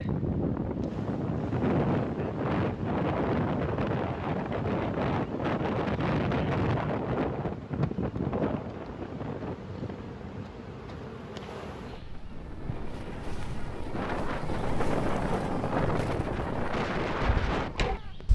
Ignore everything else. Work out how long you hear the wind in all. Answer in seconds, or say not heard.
18 s.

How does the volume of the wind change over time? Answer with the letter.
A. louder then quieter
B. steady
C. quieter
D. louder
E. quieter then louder
E.